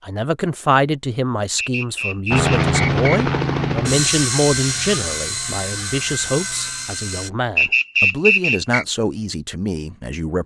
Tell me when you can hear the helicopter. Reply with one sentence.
You can hear the helicopter from 2.3 to 7.3 s.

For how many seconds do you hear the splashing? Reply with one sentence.
The splashing can't be heard in this clip.